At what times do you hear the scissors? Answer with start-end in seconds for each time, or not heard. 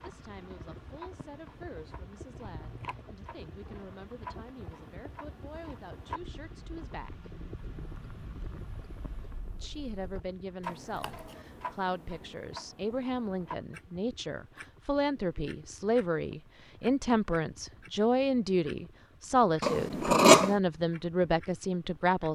2.4-3.0, 10.8-11.3, 19.6-20.6.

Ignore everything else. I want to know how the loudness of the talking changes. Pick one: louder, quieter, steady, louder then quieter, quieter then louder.
louder.